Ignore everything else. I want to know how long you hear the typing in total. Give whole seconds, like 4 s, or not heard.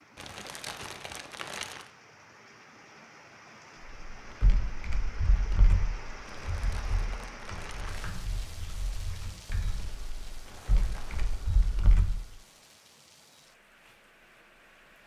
8 s.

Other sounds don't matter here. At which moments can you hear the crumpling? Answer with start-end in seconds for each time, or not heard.
0.1-1.9, 6.2-8.1, 10.4-11.4.